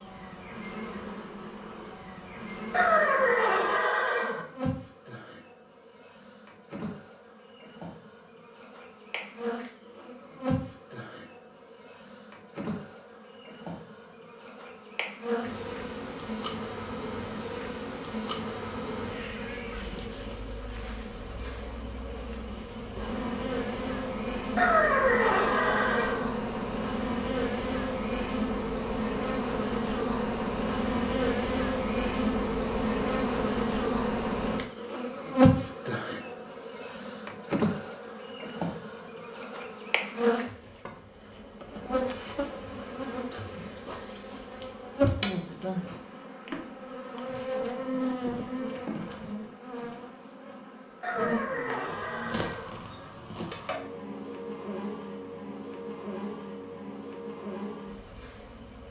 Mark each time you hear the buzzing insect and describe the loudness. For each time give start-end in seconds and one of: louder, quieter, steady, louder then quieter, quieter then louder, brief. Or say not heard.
0.0-58.8 louder then quieter.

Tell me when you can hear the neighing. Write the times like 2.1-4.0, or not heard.
2.7-4.5, 24.6-26.2, 51.0-52.7.